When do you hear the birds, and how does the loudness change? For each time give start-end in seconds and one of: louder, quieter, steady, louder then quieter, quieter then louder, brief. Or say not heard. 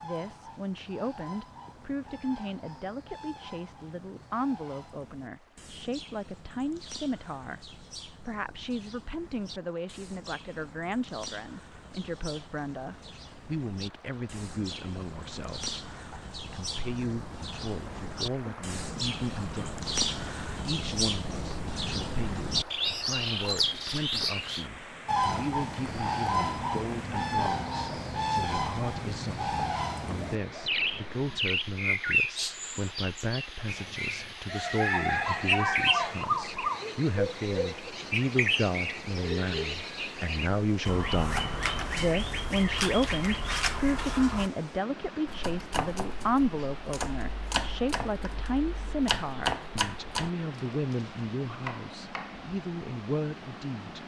0.0-44.5 louder.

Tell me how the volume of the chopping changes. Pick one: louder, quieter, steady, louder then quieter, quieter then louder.
louder then quieter.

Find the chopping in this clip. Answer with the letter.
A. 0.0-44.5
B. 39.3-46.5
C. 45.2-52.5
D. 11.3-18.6
C.